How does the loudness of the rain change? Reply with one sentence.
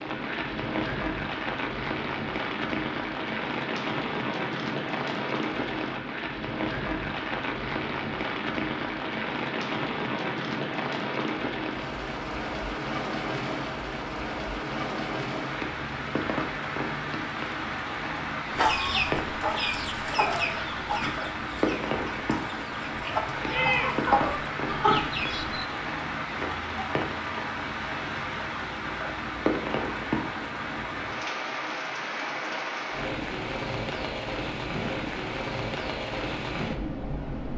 The loudness of the rain stays about the same.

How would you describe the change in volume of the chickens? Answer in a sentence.
The loudness of the chickens goes down, then up.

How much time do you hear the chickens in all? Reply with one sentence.
You can hear the chickens for 7 seconds altogether.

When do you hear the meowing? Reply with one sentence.
The meowing can be heard from 23.5 to 24.1 s.